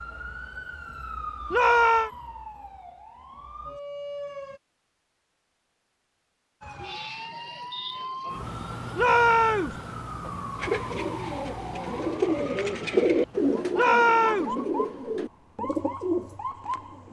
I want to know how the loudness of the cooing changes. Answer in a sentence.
The volume of the cooing goes up, then down.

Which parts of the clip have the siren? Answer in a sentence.
You can hear the siren from 0.0 to 4.6 s and from 6.6 to 17.0 s.